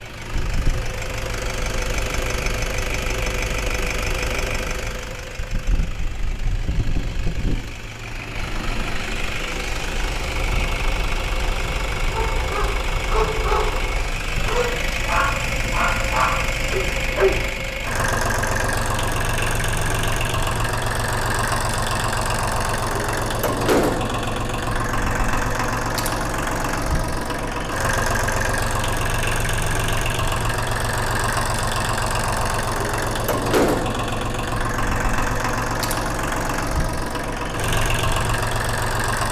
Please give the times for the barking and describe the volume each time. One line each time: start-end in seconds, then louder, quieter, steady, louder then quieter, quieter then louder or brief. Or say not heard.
12.1-17.4 steady.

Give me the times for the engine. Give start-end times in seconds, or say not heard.
0.0-39.2.